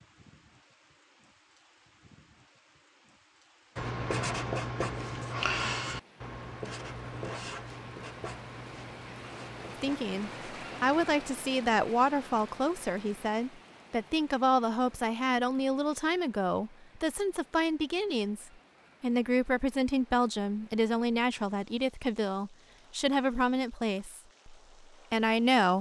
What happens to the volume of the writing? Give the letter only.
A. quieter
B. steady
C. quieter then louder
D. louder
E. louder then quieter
A.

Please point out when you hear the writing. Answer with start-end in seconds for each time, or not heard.
3.8-11.2.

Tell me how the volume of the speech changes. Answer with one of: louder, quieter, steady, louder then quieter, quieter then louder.
steady.